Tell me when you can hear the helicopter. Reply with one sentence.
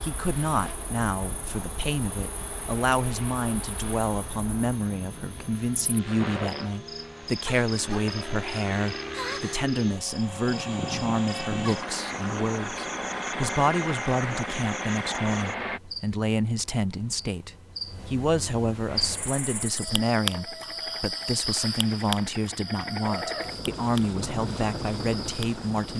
You can hear the helicopter from 0.0 to 15.8 s and from 18.9 to 25.9 s.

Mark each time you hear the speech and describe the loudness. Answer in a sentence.
The speech can be heard from 0.0 to 25.9 s, at a steady volume.